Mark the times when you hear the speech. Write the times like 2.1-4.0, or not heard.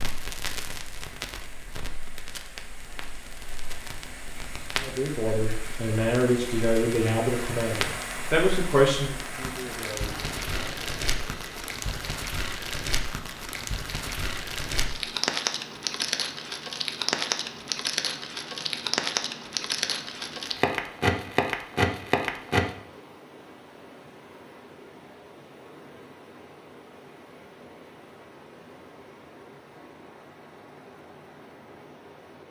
4.8-10.9.